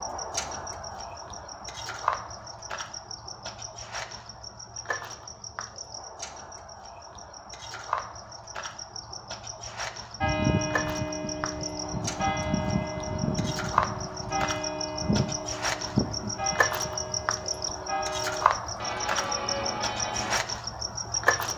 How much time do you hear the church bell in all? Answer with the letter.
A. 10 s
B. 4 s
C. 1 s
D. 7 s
A.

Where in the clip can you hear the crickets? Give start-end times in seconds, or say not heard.
0.0-21.5.